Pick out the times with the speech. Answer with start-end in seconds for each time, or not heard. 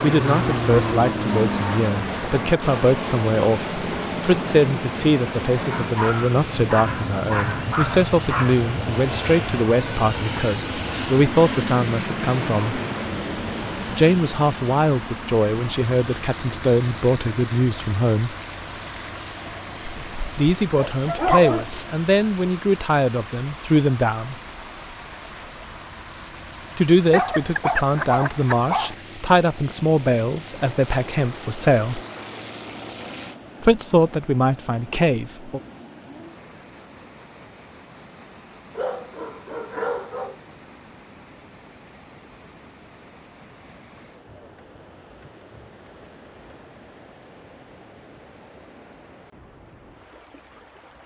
0.0-12.8, 13.9-18.4, 20.4-24.4, 26.8-32.0, 33.6-35.6.